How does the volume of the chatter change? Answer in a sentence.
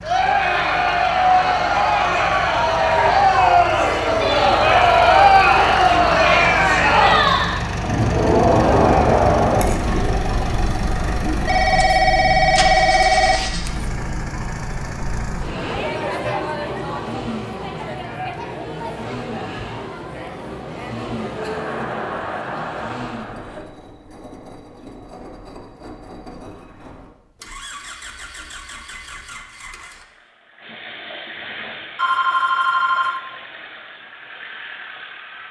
The loudness of the chatter goes down.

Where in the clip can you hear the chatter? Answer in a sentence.
The chatter can be heard from 0.0 to 23.6 s.